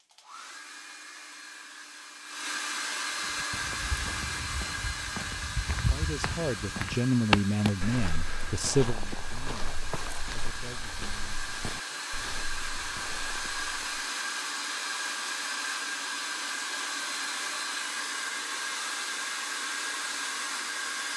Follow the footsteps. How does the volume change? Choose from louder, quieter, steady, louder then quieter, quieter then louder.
louder then quieter.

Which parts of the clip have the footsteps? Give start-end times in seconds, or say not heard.
3.2-14.1.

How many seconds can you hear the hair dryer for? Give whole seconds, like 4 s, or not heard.
21 s.